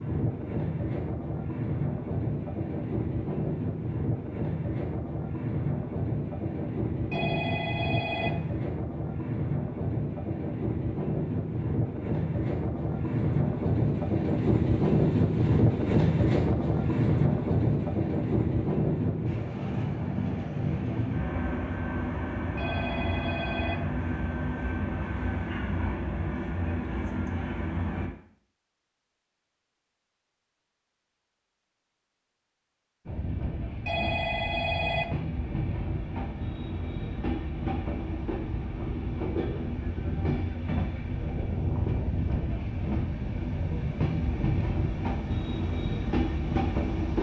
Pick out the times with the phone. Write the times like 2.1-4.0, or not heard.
7.1-8.4, 22.6-23.8, 33.9-35.1.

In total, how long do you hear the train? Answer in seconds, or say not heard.
42 s.